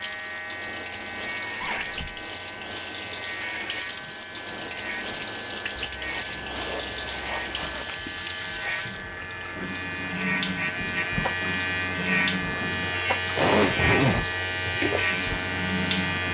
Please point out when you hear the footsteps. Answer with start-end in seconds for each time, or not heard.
not heard.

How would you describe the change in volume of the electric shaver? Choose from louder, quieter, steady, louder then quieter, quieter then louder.
louder.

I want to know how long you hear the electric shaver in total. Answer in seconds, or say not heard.
16 s.